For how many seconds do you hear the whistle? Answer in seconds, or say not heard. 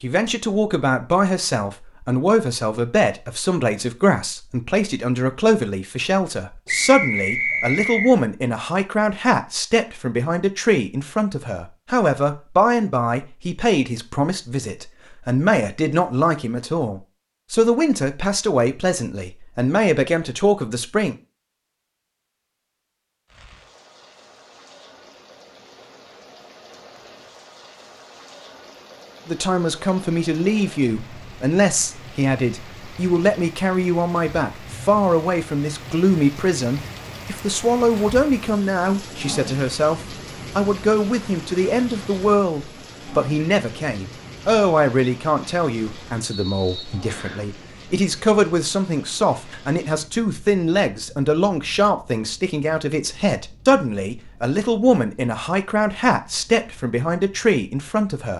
3 s.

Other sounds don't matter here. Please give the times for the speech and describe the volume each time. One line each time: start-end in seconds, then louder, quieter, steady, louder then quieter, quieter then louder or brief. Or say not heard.
0.0-21.1 steady
29.2-58.3 steady.